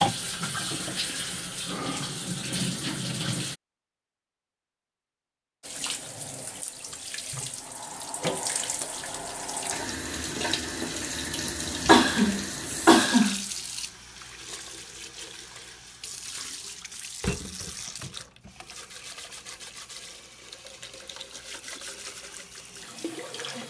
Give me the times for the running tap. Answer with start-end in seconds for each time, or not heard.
0.0-3.5, 5.6-23.6.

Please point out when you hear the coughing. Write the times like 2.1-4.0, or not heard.
11.4-13.4.